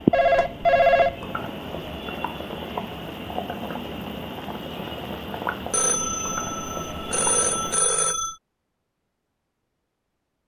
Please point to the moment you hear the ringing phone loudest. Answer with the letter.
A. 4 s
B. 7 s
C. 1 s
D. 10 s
C.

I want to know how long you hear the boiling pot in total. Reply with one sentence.
The boiling pot can be heard for 8 seconds in total.